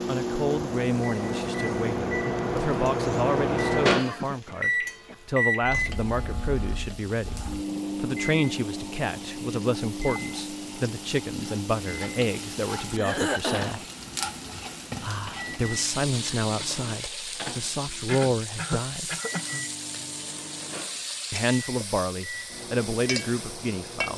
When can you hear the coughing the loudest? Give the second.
13 s.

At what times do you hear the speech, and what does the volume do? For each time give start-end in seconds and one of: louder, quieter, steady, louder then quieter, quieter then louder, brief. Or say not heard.
0.1-13.8 steady
15.0-19.1 quieter then louder
21.3-24.1 brief.